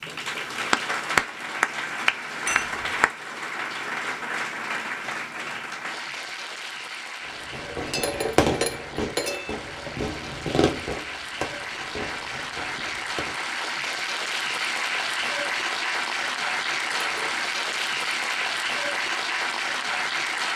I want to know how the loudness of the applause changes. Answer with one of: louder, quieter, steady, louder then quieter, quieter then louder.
quieter then louder.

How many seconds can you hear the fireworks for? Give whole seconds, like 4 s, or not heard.
6 s.